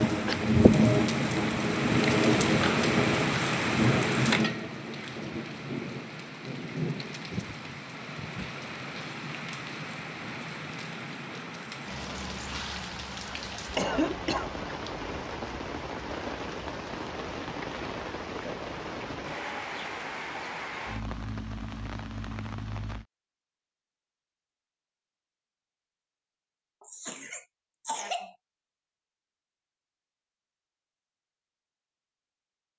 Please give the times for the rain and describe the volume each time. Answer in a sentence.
The rain can be heard from 0.0 to 23.1 s, getting quieter.